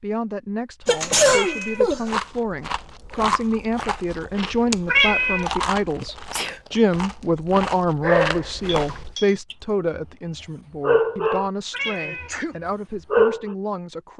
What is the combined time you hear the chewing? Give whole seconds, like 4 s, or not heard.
7 s.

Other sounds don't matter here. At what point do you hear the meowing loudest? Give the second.
5 s.